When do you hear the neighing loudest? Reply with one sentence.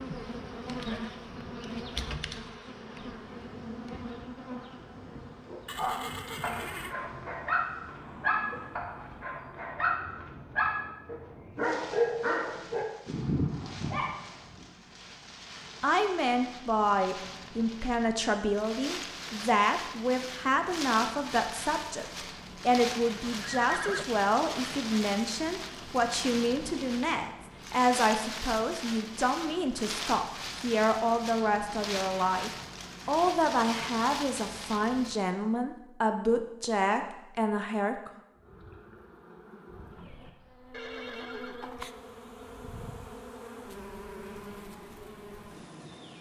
The volume of the neighing peaks at 24 seconds.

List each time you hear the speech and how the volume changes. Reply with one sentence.
You can hear the speech from 15.8 to 38.1 s, at a steady volume.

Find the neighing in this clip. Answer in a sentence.
The neighing can be heard from 5.7 to 7.0 s, from 23.4 to 24.1 s and from 40.7 to 41.9 s.